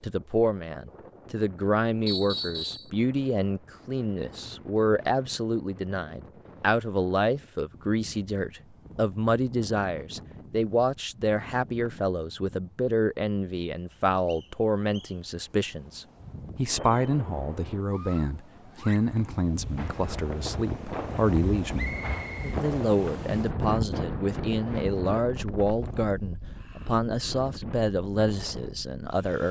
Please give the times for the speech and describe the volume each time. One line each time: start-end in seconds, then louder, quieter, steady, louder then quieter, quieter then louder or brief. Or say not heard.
0.0-29.4 steady.